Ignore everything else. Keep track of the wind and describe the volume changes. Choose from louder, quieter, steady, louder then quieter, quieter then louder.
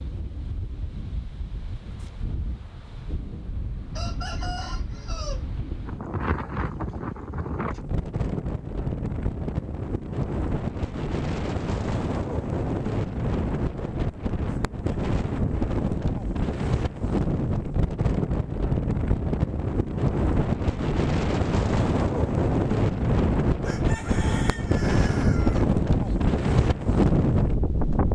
louder.